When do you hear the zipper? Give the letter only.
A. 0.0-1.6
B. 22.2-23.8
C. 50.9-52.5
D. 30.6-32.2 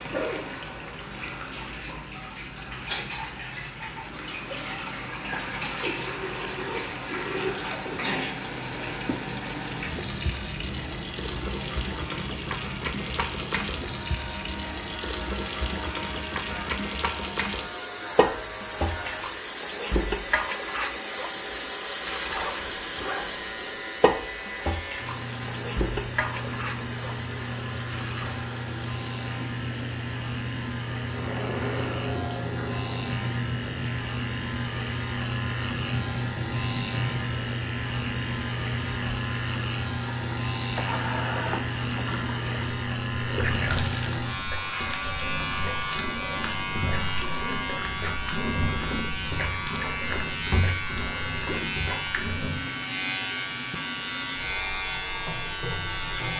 B.